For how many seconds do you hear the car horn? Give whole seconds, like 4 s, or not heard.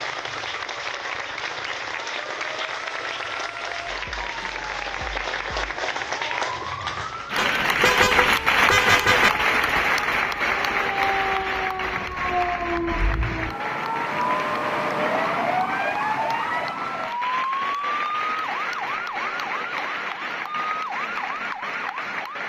2 s.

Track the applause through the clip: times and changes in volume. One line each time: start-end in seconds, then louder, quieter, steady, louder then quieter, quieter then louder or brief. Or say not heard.
0.0-22.4 louder then quieter.